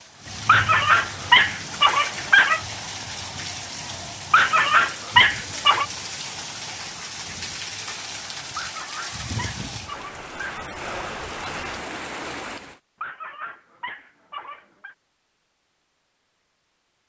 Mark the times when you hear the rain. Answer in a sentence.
You can hear the rain from 0.0 to 12.8 s.